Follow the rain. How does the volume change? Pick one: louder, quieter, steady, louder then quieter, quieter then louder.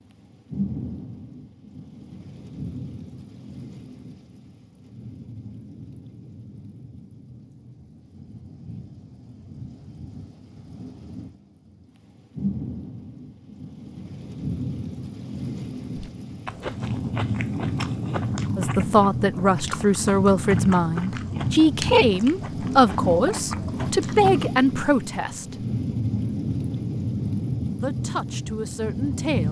quieter then louder.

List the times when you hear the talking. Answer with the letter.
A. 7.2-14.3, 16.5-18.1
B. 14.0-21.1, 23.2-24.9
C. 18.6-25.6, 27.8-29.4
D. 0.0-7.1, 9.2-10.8
C.